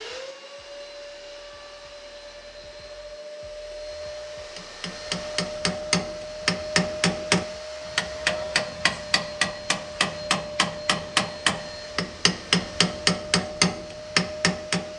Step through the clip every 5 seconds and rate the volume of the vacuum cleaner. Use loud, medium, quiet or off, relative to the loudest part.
medium, loud, loud.